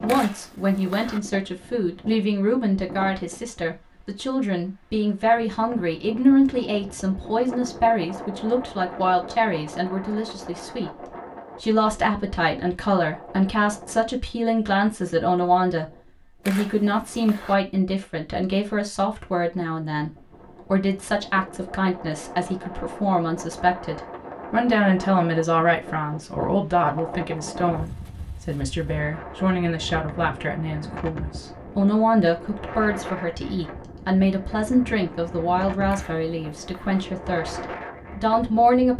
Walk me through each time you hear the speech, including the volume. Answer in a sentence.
You can hear the speech from 0.0 to 38.9 s, at a steady volume.